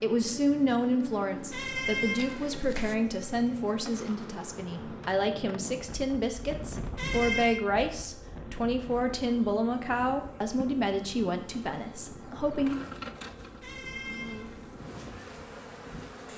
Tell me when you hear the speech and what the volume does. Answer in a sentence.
You can hear the speech from 0.0 to 12.8 s, at a steady volume.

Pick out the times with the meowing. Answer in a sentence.
The meowing can be heard from 1.5 to 3.0 s, from 7.0 to 7.6 s and from 13.6 to 14.8 s.